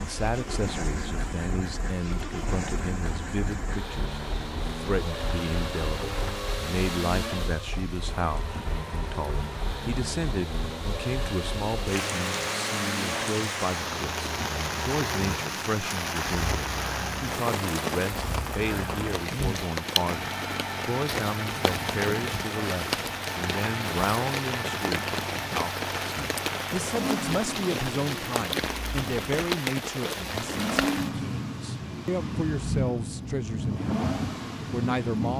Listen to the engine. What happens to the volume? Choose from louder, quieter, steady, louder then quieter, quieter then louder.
steady.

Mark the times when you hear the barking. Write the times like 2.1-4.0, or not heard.
not heard.